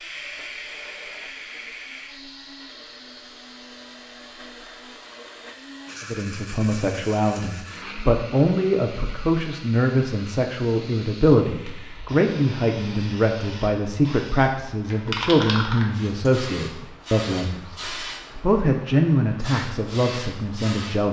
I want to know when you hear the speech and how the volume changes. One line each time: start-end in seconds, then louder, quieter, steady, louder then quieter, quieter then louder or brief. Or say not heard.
6.0-21.0 steady.